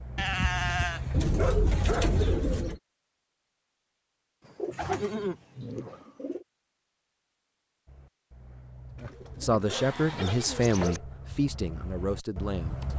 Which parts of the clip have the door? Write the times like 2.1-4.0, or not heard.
not heard.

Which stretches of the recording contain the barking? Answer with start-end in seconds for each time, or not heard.
0.0-2.2, 7.8-12.9.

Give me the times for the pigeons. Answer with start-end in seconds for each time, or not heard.
1.1-2.8, 4.5-6.5, 8.9-11.0.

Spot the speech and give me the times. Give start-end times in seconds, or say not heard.
9.4-12.9.